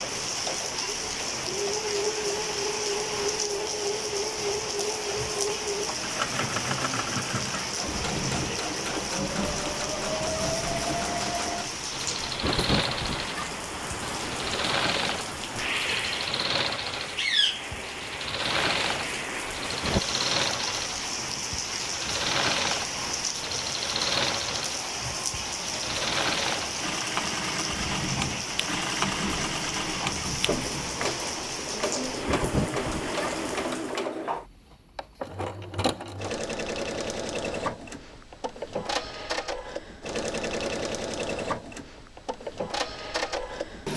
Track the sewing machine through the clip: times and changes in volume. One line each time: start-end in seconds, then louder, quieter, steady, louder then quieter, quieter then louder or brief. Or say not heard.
0.0-43.9 steady.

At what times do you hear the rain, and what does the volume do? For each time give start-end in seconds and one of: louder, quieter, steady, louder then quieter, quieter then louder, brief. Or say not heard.
0.0-34.0 steady.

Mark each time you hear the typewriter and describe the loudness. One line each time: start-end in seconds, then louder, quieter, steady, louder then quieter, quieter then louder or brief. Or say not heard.
not heard.